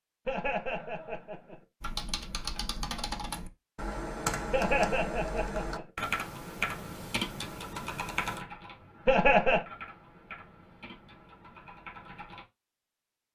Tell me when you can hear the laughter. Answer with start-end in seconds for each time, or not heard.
0.2-1.6, 4.5-5.8, 9.1-9.7.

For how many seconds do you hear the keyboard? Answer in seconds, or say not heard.
11 s.